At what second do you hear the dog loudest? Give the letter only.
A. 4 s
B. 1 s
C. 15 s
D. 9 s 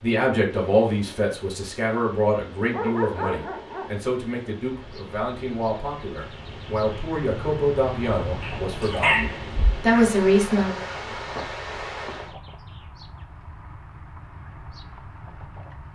D.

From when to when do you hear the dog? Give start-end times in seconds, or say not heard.
2.7-4.0, 8.4-9.8.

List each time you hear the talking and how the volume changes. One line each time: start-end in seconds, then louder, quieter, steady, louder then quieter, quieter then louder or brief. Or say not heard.
0.0-10.8 quieter then louder.